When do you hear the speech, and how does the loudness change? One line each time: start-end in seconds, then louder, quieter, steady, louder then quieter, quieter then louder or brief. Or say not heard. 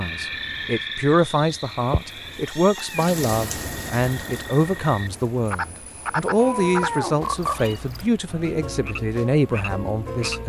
0.0-10.4 steady.